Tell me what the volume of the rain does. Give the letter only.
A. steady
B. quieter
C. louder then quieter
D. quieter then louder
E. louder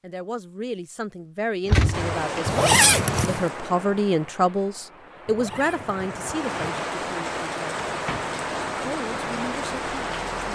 D.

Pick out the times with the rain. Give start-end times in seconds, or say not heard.
1.9-10.4.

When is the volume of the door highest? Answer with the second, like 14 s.
2 s.